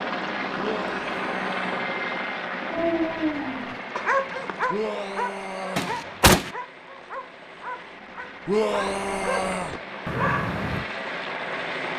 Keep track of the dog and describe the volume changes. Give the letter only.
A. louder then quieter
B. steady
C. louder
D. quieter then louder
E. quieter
D.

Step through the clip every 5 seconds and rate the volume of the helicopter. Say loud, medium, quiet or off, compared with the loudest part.
loud, medium, loud.